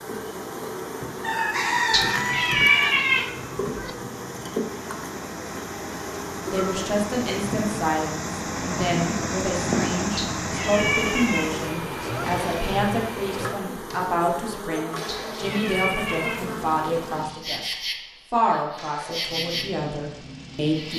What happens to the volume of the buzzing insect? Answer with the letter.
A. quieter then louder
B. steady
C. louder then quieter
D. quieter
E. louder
B.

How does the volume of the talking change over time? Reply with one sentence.
The volume of the talking stays about the same.